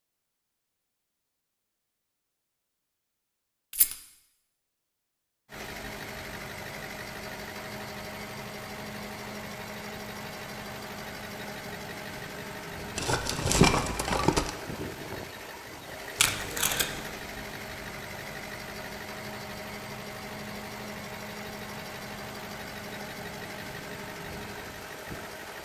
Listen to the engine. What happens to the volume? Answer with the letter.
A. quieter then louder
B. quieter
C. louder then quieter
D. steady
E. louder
D.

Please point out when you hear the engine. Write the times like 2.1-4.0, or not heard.
5.5-25.5.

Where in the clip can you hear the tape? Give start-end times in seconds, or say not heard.
16.1-17.1.